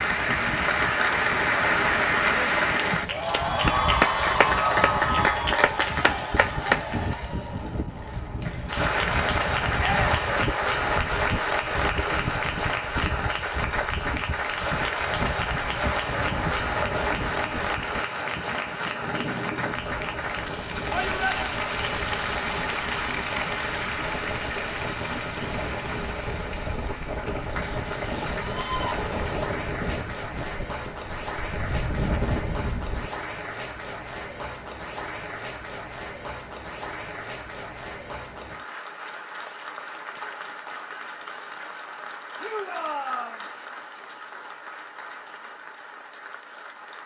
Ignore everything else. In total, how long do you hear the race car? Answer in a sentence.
You can't hear the race car here.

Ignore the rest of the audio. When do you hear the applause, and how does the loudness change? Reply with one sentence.
You can hear the applause from 0.0 to 47.0 s, getting quieter.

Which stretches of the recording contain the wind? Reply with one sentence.
You can hear the wind from 0.0 to 33.1 s.